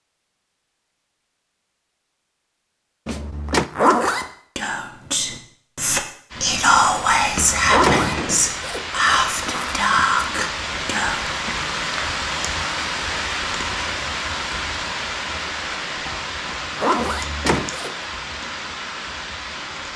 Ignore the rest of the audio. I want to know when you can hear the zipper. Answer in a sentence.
You can hear the zipper from 3.5 to 4.2 s, from 7.7 to 9.8 s and from 16.8 to 18.1 s.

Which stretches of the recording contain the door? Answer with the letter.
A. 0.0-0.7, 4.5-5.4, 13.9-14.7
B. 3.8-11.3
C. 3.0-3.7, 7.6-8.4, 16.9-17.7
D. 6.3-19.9
C.